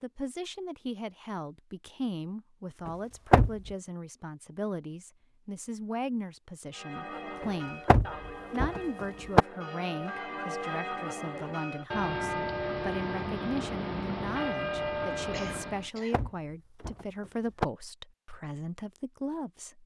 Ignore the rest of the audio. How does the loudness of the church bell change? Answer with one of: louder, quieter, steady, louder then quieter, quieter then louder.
louder.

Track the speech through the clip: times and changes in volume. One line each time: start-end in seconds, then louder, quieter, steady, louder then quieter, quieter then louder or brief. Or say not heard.
0.0-7.8 steady
8.5-19.8 steady.